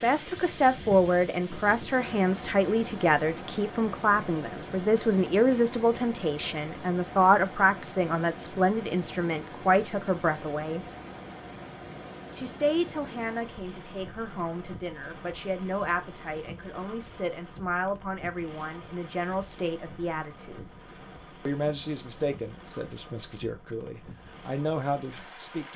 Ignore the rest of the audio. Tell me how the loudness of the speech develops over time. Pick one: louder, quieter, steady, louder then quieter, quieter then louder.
quieter.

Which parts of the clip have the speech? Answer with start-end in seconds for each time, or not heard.
0.0-10.8, 12.3-20.7, 21.4-25.7.